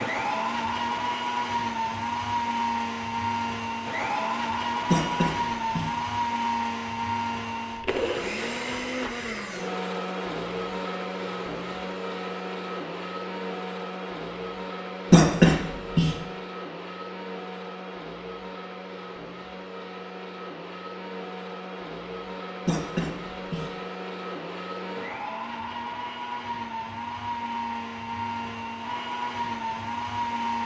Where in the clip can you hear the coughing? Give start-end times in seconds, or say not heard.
4.8-5.9, 15.1-16.1, 22.6-23.6.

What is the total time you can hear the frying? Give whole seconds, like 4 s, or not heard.
not heard.